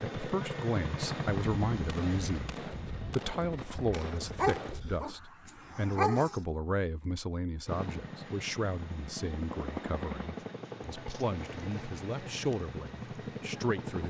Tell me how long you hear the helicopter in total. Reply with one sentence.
You can hear the helicopter for 11 seconds altogether.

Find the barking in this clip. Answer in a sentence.
You can hear the barking from 3.9 to 6.4 s.